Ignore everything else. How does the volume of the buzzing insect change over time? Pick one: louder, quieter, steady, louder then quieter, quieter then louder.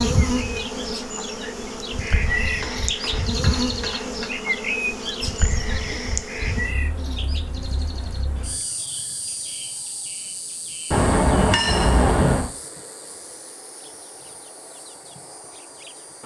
quieter.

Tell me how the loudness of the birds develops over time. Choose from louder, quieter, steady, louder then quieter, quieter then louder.
quieter.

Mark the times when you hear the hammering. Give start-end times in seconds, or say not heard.
2.2-4.2, 10.9-12.5.